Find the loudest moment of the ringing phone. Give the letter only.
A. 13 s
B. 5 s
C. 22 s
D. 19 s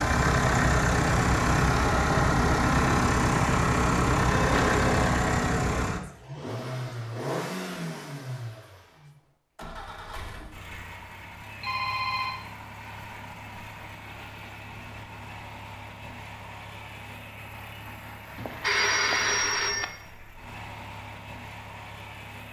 D.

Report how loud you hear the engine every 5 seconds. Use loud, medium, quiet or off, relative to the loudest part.
loud, medium, quiet, quiet, quiet.